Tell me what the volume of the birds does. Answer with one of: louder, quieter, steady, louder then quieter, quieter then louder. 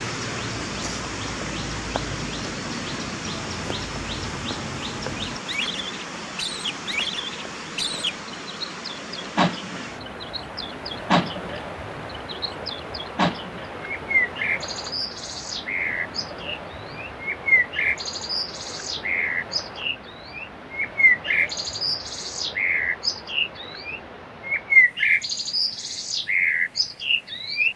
louder.